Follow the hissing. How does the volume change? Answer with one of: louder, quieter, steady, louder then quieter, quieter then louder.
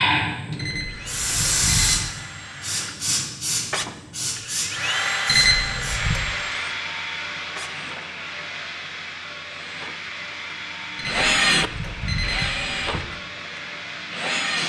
quieter.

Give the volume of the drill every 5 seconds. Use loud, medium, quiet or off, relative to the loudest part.
medium, medium, loud.